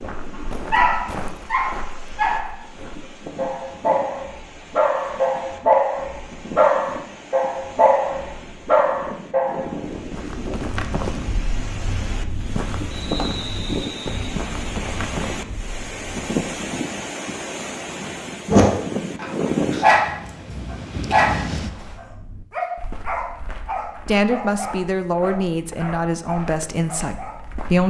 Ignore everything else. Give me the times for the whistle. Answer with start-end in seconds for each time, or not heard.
12.9-14.3.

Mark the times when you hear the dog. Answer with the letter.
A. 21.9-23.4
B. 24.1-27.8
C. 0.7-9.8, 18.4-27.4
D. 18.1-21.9
C.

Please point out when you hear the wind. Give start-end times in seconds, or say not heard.
0.0-22.0.